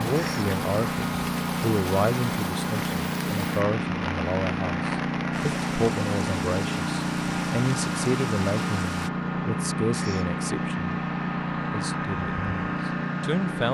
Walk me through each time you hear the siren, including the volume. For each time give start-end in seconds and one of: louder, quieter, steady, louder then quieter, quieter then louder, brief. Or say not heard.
not heard.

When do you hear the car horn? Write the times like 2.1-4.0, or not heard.
not heard.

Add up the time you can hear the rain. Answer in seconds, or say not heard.
9 s.